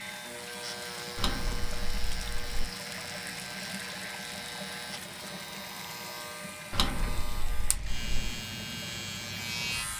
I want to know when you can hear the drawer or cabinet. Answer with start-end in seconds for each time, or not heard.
1.1-2.7, 6.7-8.4.